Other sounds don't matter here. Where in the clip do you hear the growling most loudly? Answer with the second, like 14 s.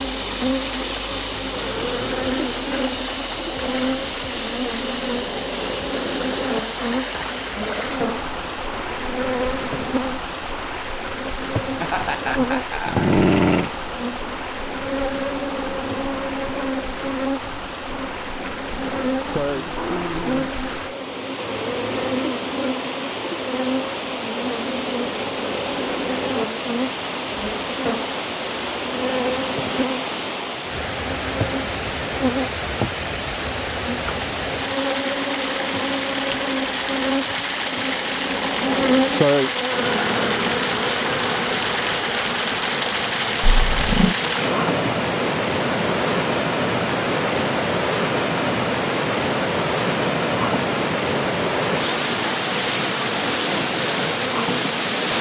13 s.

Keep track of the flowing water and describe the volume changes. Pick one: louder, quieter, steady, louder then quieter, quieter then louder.
louder.